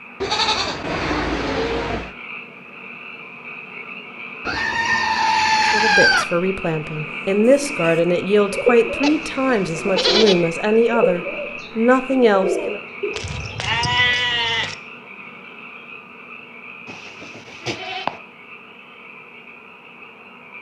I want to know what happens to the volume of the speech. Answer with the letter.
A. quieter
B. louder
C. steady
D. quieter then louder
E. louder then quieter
B.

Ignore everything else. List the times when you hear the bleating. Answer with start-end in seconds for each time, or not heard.
0.2-2.1, 4.5-6.2, 9.0-10.4, 13.1-14.8, 16.9-18.1.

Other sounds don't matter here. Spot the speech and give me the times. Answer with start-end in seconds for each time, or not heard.
5.7-12.8.